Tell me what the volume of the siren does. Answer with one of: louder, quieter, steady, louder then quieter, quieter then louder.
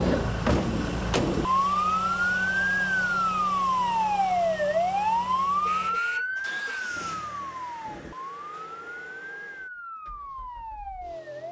quieter.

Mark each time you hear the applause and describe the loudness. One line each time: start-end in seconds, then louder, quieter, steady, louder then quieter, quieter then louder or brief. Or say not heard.
not heard.